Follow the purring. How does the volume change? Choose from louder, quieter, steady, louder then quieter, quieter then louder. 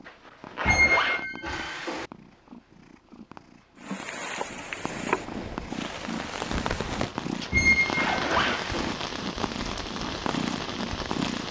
louder.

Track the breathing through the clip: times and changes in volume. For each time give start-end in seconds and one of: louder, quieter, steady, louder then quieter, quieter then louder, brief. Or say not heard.
not heard.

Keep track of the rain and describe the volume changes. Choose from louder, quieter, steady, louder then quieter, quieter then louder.
steady.